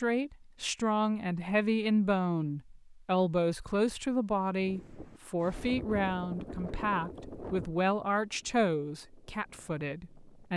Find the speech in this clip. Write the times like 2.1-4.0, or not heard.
0.0-10.5.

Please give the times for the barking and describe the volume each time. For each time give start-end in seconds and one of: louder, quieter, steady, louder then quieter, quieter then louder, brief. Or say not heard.
not heard.